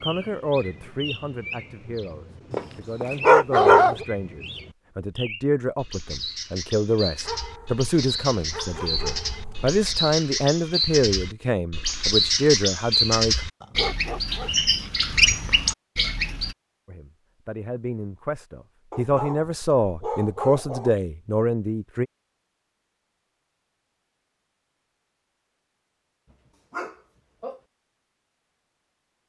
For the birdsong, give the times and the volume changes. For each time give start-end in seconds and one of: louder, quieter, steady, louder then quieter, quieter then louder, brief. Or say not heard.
0.0-16.6 louder.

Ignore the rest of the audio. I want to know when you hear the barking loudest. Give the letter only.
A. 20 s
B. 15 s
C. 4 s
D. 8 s
C.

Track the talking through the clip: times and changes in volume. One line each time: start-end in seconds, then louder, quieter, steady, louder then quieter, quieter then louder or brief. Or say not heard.
0.0-13.4 louder
16.9-22.1 louder.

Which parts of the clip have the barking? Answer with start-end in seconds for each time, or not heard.
2.5-4.0, 7.2-10.1, 13.6-14.5, 18.9-20.9, 26.7-27.6.